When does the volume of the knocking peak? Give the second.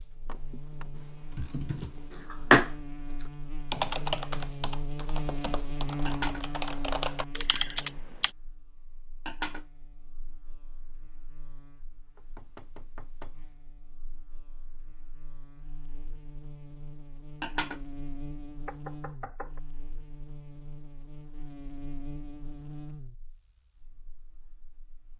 19 s.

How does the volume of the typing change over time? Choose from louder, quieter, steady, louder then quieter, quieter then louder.
quieter then louder.